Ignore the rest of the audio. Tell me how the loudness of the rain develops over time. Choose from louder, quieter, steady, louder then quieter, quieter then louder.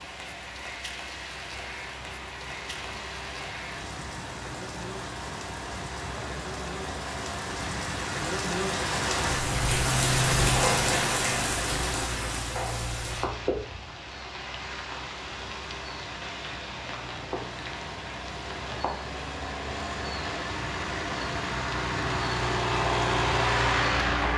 louder then quieter.